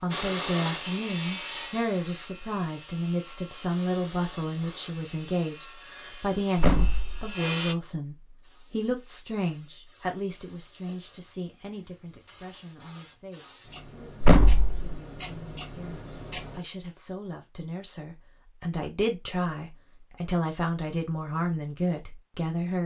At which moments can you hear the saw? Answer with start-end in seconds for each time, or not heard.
0.1-7.8.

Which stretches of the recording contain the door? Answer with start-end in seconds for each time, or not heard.
6.5-7.3, 14.2-14.8.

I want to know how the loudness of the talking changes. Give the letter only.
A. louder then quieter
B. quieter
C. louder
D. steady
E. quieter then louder
E.